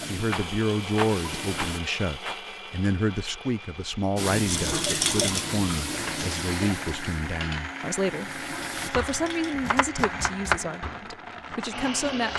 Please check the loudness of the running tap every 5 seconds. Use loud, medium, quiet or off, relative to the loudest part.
loud, loud, off.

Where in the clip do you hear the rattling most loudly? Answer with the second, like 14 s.
5 s.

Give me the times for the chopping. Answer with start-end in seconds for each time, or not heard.
8.9-12.3.